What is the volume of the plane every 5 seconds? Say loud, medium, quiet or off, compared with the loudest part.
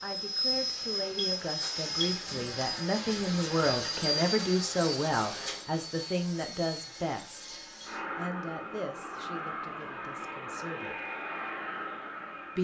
loud, medium, medium.